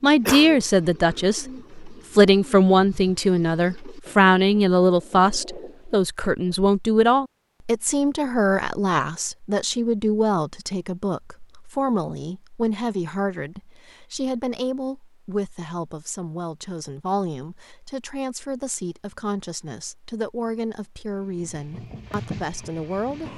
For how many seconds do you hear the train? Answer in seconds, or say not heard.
2 s.